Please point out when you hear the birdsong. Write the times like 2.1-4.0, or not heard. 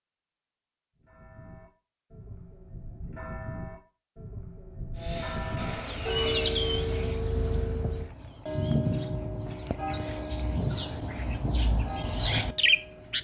5.6-13.2.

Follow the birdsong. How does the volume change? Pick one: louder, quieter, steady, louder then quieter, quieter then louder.
quieter then louder.